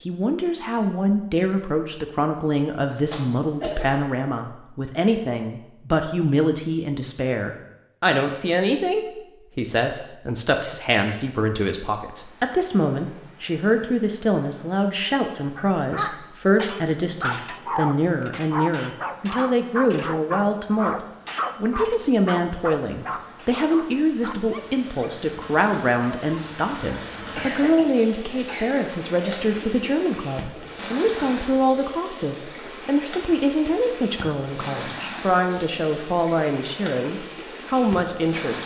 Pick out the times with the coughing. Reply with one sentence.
The coughing can be heard from 3.1 to 4.0 s and from 27.4 to 29.4 s.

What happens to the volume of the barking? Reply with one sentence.
The loudness of the barking goes down.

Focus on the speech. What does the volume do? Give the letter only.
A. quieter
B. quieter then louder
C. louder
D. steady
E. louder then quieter
D.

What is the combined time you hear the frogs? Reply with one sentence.
You can't hear the frogs here.